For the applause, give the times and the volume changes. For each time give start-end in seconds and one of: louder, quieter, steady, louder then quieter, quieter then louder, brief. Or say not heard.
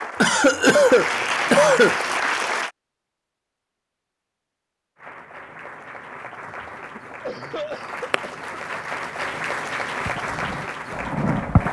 0.0-2.7 brief
5.0-11.6 louder.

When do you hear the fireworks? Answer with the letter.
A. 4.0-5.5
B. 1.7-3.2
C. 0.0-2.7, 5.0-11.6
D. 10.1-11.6
D.